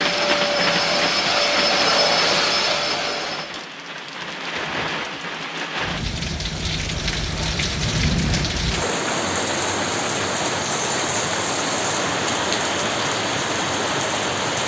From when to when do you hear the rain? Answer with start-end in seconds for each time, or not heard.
0.0-14.6.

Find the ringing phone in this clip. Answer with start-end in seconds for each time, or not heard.
not heard.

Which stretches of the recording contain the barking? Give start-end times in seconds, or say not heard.
not heard.